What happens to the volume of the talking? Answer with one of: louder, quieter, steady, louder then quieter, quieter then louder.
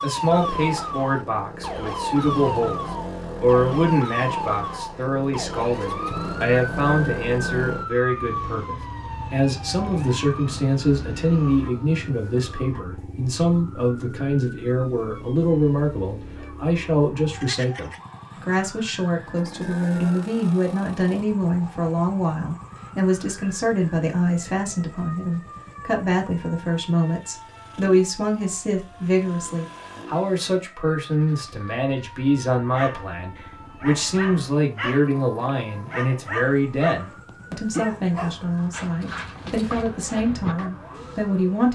steady.